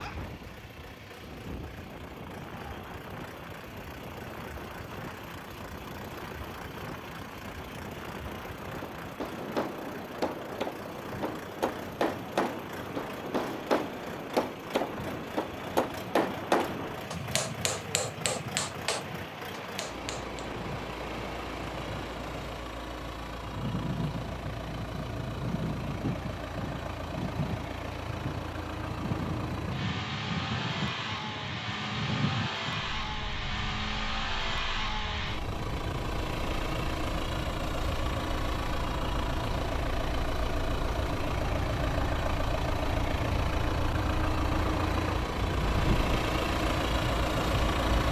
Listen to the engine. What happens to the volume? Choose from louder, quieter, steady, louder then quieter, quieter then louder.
louder.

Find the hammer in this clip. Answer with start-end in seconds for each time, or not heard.
8.8-20.4.